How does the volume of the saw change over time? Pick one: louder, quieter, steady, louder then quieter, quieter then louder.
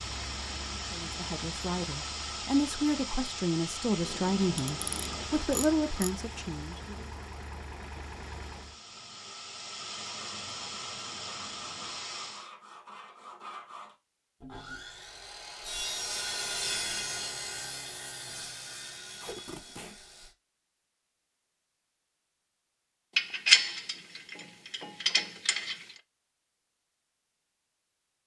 louder then quieter.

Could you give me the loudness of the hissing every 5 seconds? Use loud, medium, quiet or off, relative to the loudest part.
loud, medium, loud, off, off, off.